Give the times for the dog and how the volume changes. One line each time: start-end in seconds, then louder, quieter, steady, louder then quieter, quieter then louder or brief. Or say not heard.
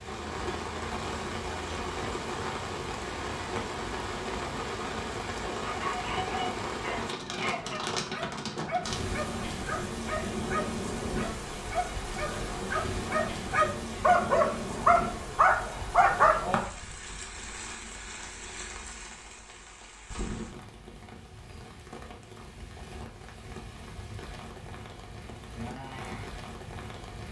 5.6-16.6 louder.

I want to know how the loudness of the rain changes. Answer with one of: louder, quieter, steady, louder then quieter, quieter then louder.
quieter.